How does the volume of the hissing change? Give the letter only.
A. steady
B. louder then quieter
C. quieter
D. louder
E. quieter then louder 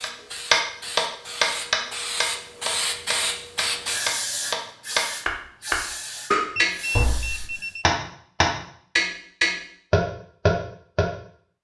B.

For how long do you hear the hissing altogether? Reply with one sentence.
The hissing can be heard for 8 seconds in total.